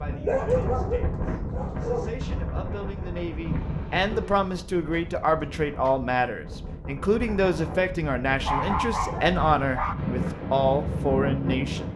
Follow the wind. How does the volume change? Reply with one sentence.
The loudness of the wind goes down, then up.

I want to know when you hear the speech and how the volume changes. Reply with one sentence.
You can hear the speech from 0.0 to 11.9 s, getting louder.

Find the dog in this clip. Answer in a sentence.
You can hear the dog from 0.1 to 2.1 s, from 4.1 to 6.0 s and from 8.4 to 9.9 s.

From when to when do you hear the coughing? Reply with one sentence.
The coughing can be heard from 3.5 to 4.4 s.